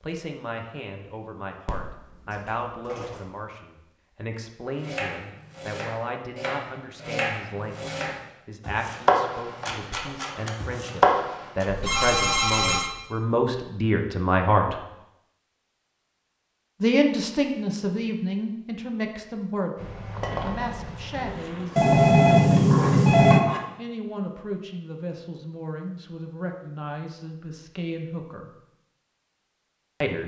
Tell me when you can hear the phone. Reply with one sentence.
The phone can be heard from 1.6 to 3.2 s, from 11.7 to 12.9 s and from 21.8 to 23.4 s.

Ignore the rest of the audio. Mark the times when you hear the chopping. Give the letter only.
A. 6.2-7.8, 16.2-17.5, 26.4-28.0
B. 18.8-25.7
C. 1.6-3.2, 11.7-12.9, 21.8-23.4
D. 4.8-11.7
D.